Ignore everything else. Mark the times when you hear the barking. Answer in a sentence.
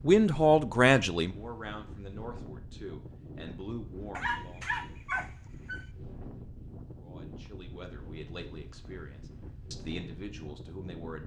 You can hear the barking from 4.2 to 5.8 s.